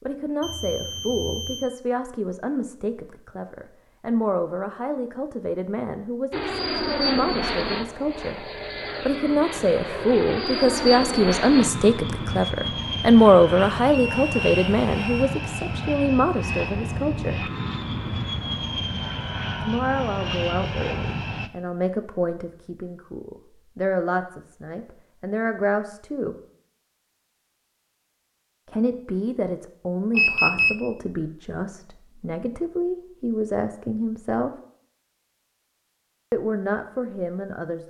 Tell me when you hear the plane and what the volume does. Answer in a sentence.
The plane can be heard from 6.3 to 21.5 s, at a steady volume.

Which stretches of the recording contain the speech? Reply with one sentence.
You can hear the speech from 0.0 to 8.4 s, from 9.0 to 17.5 s, from 19.6 to 26.4 s, from 28.6 to 34.5 s and from 36.3 to 37.8 s.